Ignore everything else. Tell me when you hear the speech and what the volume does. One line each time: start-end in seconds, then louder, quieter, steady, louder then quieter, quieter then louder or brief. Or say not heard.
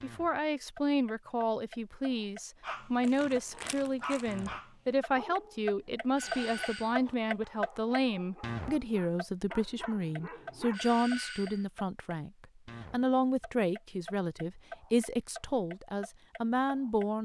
0.0-17.2 steady.